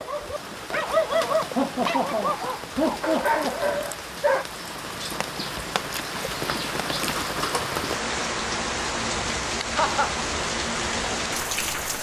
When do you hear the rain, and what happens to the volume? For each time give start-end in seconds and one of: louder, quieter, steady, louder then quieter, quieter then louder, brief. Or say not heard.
0.0-11.9 louder.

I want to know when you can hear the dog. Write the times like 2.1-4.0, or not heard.
0.0-4.5.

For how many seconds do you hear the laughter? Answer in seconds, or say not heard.
3 s.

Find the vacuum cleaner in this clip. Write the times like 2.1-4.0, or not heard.
not heard.